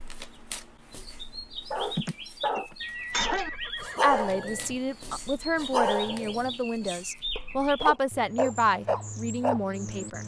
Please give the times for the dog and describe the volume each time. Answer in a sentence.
You can hear the dog from 1.7 to 9.6 s, getting quieter then louder.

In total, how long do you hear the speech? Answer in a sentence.
You can hear the speech for 6 seconds altogether.